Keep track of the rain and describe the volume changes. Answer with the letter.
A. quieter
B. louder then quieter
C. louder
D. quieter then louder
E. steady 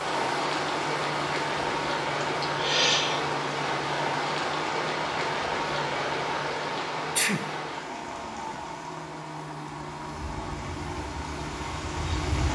A.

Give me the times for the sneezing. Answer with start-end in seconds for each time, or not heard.
2.5-3.2, 7.2-8.2.